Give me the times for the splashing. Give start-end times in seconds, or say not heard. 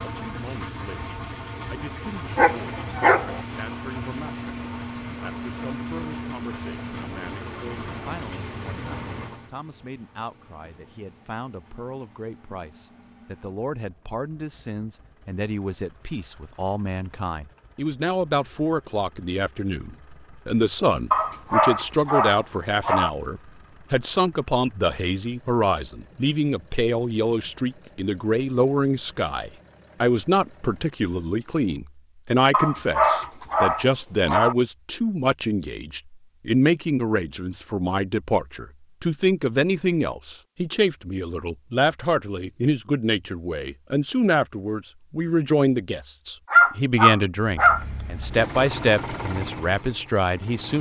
not heard.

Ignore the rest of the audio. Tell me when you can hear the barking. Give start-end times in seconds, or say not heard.
2.4-3.4, 21.1-23.1, 32.5-34.5, 46.5-47.9.